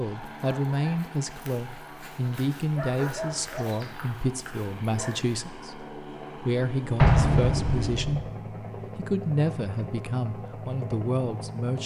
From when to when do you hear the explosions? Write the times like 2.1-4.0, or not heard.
7.0-8.2.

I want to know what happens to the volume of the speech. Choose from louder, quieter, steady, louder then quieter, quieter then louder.
steady.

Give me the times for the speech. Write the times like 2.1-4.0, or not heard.
0.0-11.8.